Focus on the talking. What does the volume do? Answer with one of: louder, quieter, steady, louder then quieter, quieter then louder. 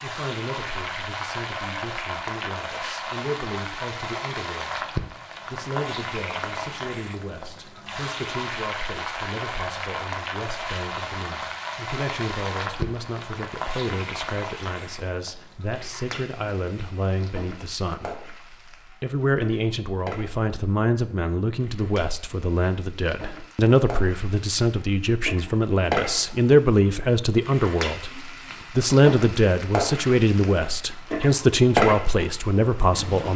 louder.